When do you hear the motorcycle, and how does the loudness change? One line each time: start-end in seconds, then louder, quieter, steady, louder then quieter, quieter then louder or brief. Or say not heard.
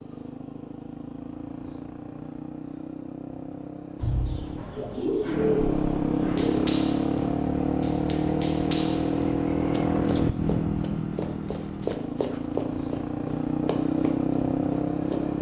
0.0-15.3 louder.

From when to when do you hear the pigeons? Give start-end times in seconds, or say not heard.
4.0-6.7.